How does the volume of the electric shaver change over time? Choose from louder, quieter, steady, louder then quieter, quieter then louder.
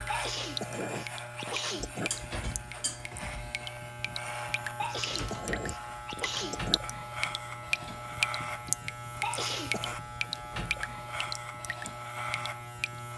steady.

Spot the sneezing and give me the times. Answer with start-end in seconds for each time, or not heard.
0.1-2.1, 4.8-6.8, 9.2-9.9.